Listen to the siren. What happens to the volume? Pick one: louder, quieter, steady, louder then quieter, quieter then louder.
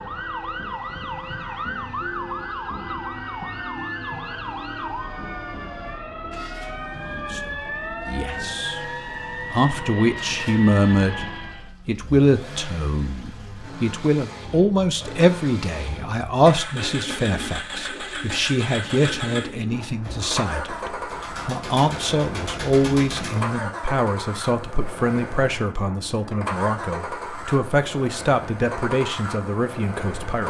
steady.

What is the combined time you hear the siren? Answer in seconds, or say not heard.
12 s.